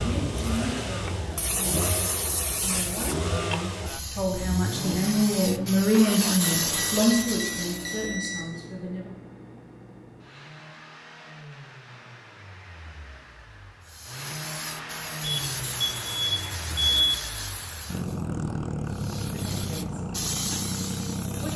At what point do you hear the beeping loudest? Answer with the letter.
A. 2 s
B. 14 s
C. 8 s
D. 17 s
D.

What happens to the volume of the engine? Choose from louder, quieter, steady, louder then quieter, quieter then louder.
quieter then louder.